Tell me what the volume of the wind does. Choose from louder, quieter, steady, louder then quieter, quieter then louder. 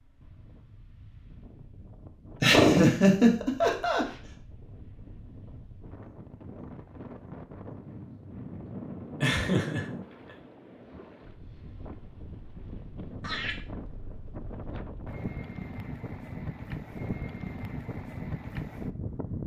louder.